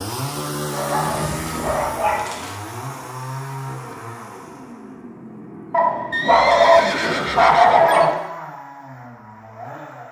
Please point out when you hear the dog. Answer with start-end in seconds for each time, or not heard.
0.7-2.5, 5.7-8.2.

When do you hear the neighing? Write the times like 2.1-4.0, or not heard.
1.1-2.1, 6.1-8.2.